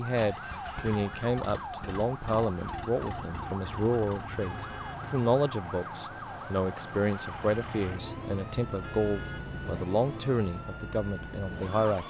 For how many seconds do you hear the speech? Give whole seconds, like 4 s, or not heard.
12 s.